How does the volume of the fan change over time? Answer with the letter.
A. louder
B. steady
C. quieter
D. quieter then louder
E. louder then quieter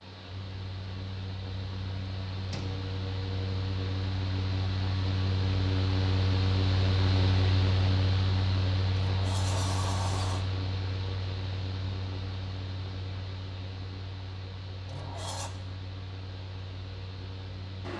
E.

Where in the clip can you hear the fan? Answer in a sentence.
You can hear the fan from 0.0 to 17.9 s.